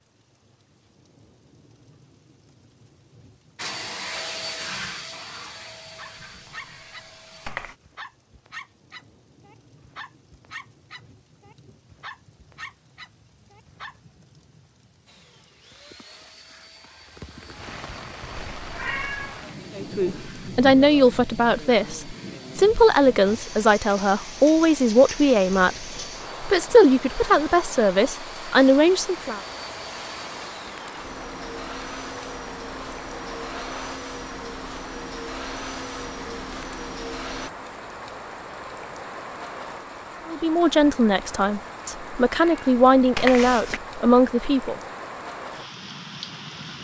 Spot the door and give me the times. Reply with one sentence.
You can't hear the door here.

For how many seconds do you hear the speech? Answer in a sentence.
The speech can be heard for 14 seconds in total.